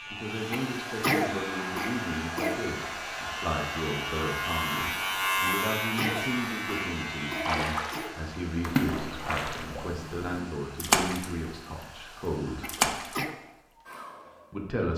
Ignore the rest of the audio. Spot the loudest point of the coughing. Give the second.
1 s.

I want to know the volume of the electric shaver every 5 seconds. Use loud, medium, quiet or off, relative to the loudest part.
medium, loud, off.